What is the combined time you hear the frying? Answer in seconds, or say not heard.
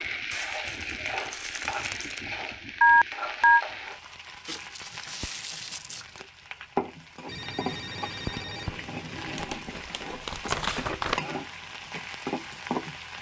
13 s.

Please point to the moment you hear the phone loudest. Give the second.
3 s.